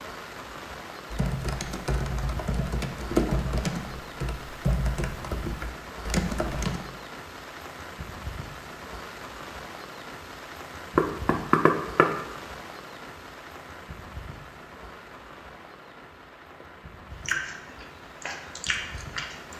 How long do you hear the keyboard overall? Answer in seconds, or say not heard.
6 s.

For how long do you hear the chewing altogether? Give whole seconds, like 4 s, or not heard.
3 s.